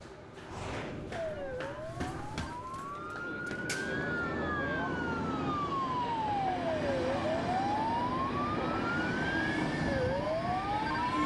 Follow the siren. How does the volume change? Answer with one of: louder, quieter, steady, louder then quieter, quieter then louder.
louder.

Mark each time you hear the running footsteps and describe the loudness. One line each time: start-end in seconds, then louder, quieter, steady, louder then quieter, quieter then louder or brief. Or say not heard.
0.0-4.1 louder then quieter.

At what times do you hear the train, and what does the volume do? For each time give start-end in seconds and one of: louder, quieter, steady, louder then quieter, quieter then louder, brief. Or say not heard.
0.0-11.2 louder.